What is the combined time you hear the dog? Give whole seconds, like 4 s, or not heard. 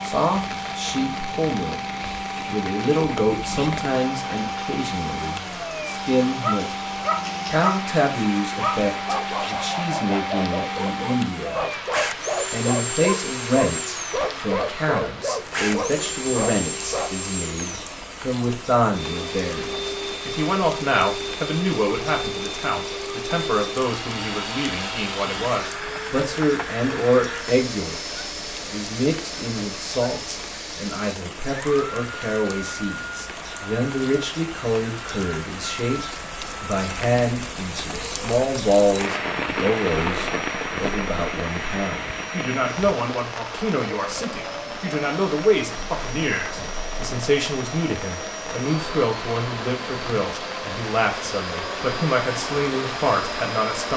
11 s.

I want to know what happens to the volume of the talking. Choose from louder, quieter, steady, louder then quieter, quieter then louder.
steady.